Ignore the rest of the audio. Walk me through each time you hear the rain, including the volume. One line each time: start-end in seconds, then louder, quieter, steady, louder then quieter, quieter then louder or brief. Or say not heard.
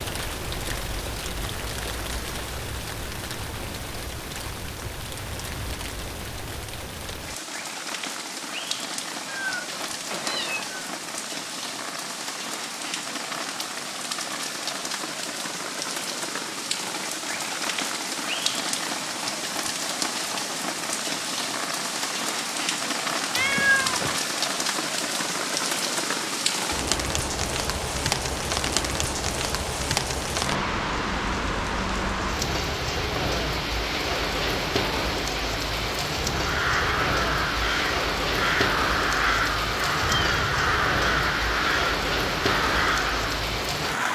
0.0-44.1 louder.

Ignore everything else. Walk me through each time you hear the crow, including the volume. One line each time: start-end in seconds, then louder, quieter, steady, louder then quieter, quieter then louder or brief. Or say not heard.
36.4-43.5 steady.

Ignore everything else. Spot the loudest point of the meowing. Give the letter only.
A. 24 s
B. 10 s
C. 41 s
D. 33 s
A.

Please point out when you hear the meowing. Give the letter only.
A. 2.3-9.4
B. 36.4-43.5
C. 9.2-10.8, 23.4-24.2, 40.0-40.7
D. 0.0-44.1
C.